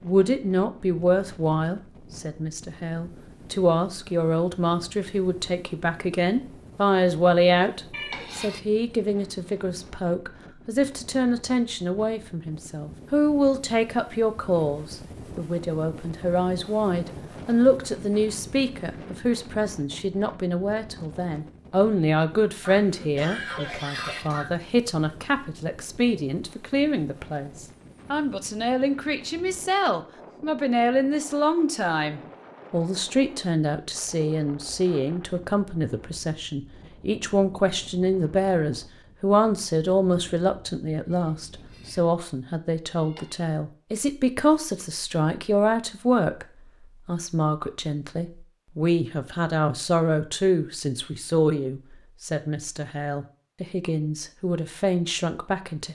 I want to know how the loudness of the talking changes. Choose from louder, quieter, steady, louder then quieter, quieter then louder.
steady.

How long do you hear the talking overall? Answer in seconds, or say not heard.
55 s.